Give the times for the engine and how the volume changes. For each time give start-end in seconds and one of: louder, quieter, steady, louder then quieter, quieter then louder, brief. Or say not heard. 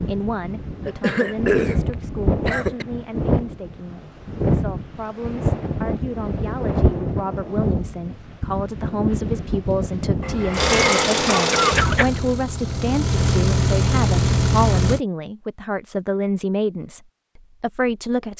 10.5-15.0 quieter then louder.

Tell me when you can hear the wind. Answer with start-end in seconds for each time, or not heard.
0.0-10.4.